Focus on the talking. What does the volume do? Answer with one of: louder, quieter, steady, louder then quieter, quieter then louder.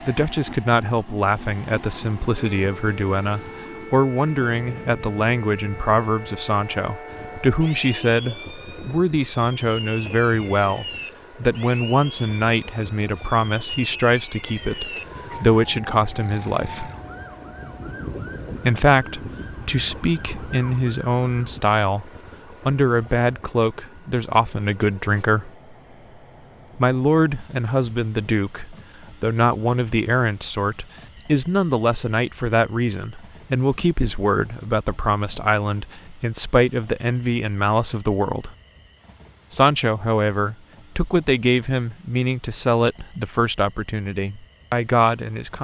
steady.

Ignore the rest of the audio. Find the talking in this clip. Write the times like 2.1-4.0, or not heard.
0.1-16.9, 18.6-25.5, 26.8-38.5, 39.5-45.5.